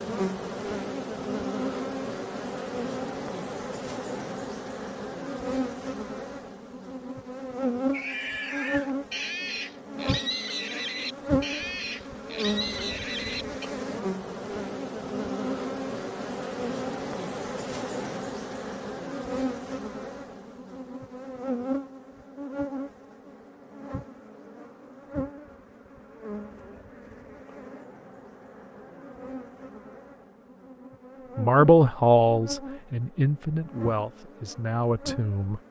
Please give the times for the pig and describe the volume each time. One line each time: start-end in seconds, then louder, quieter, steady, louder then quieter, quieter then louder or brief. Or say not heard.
7.9-13.7 steady.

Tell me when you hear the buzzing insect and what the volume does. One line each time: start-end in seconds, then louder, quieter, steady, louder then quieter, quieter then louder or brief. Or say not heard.
0.0-35.6 quieter.